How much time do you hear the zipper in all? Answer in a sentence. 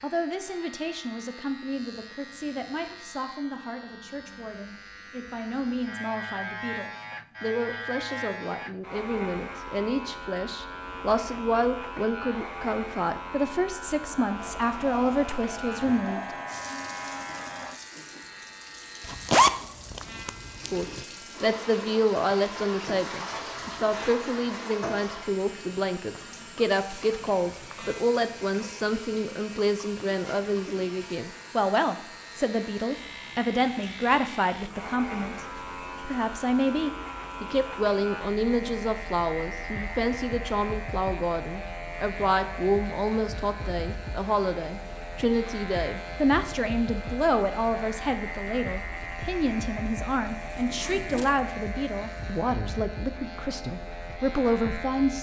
The zipper can be heard for 3 seconds in total.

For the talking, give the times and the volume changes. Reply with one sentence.
You can hear the talking from 0.0 to 16.4 s, getting louder; and from 20.7 to 55.1 s, at a steady volume.